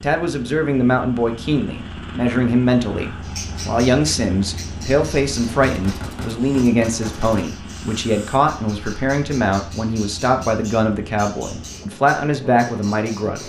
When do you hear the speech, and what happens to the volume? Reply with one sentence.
The speech can be heard from 0.0 to 13.4 s, at a steady volume.